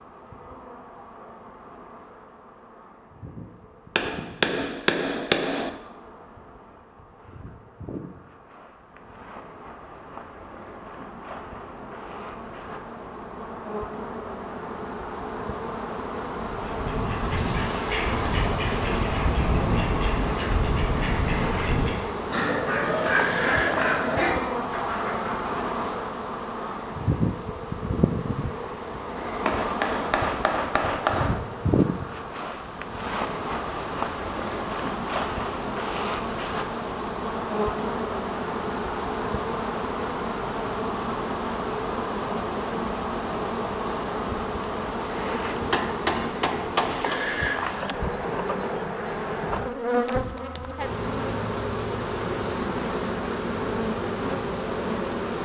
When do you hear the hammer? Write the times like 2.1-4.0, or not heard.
4.0-5.7, 29.4-31.4, 45.5-47.2.